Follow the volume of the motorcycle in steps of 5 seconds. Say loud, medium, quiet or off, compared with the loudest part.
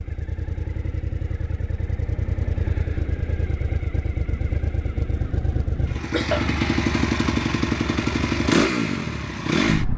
medium, loud.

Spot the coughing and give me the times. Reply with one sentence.
You can hear the coughing from 6.0 to 6.5 s.